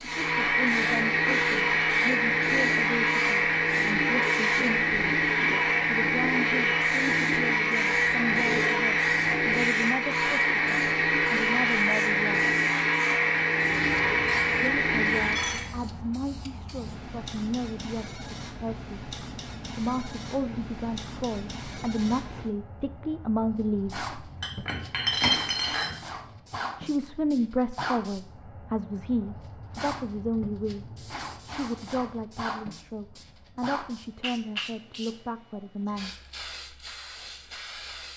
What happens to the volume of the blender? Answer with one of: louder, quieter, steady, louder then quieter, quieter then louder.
steady.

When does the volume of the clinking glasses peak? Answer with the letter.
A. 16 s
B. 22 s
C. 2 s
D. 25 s
D.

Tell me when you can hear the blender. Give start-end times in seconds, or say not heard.
0.0-15.7.